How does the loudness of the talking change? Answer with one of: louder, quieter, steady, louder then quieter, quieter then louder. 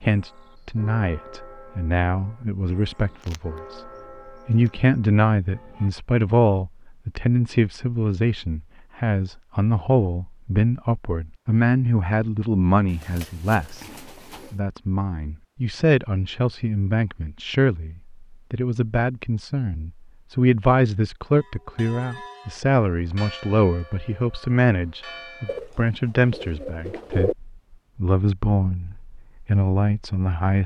steady.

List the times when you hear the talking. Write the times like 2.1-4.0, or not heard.
0.0-13.8, 14.5-30.6.